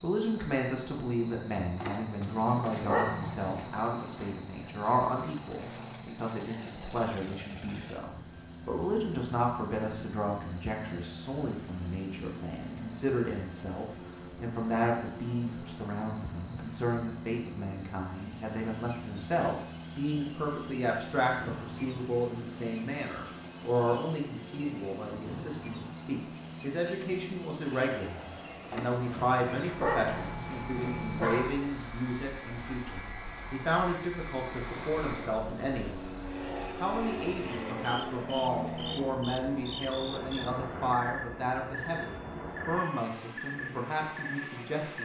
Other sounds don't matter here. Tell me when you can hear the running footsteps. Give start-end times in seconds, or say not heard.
not heard.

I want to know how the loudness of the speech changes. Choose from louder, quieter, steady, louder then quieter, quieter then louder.
steady.